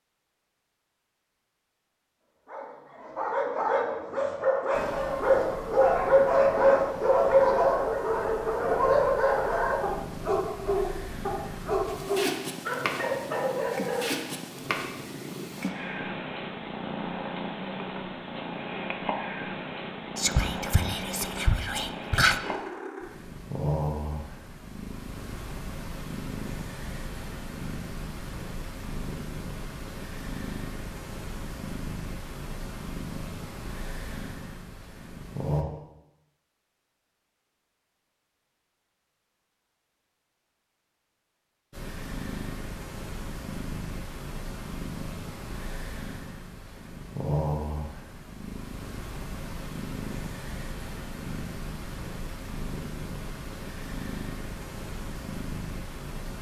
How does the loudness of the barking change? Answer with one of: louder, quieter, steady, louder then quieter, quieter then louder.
louder then quieter.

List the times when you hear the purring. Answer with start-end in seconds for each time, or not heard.
4.7-35.6, 41.7-56.3.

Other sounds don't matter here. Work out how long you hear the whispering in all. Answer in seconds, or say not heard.
2 s.